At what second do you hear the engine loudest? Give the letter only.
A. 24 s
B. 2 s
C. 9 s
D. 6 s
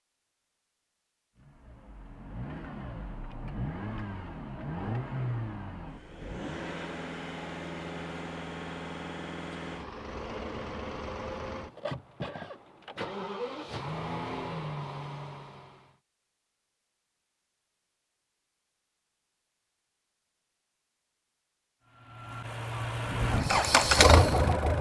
A.